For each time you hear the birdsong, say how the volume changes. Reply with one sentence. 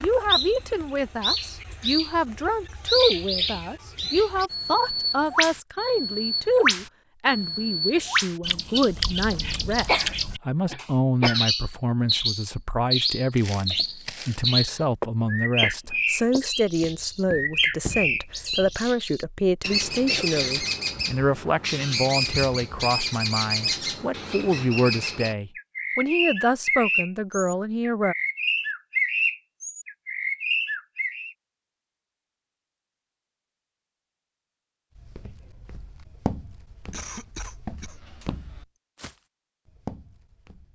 The birdsong can be heard from 0.0 to 31.4 s, at a steady volume.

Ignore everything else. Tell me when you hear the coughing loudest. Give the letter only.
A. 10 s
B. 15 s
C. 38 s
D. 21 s
A.